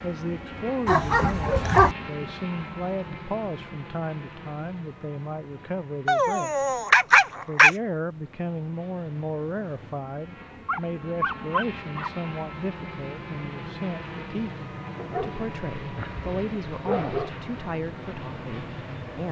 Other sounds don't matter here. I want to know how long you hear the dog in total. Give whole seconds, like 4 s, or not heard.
7 s.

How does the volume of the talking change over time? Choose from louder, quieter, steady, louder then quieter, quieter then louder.
steady.